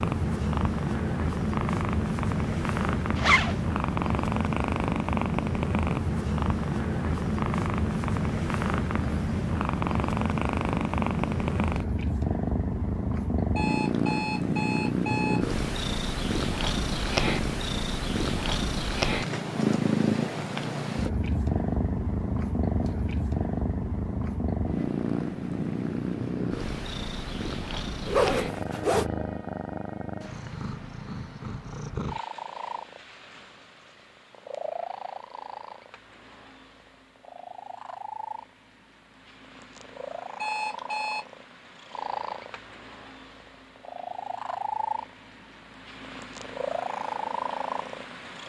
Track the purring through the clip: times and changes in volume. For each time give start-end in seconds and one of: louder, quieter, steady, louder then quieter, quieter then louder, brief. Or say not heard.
0.0-48.4 quieter.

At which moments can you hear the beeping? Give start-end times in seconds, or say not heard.
13.6-15.4, 40.4-41.2.